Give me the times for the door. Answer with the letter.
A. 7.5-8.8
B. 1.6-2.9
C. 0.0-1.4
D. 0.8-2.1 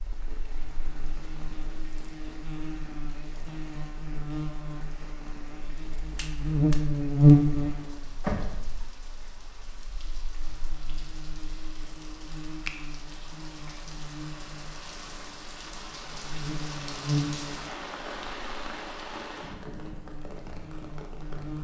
A.